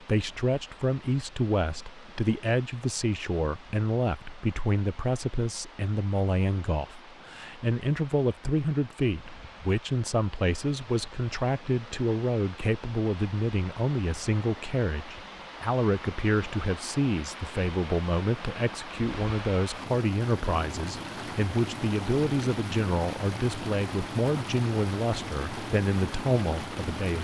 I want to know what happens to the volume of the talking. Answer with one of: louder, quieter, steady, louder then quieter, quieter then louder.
steady.